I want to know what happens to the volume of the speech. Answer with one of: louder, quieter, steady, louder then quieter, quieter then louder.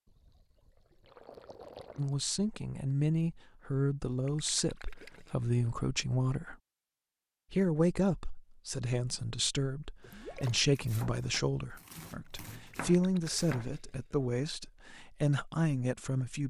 steady.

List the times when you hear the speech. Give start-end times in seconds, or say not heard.
1.9-6.5, 7.5-16.4.